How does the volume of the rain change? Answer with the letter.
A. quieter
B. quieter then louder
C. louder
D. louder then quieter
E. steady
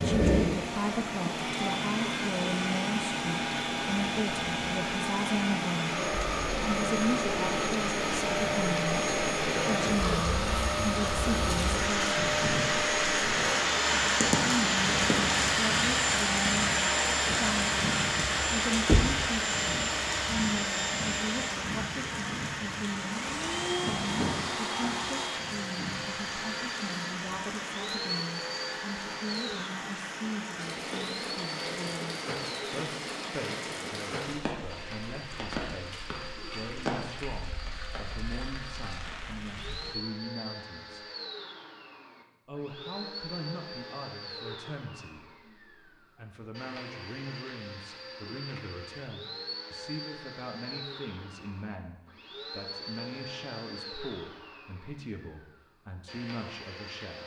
D.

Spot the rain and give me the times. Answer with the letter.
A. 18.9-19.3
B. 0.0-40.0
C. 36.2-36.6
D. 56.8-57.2
B.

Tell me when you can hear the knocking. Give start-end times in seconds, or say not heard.
18.9-19.3.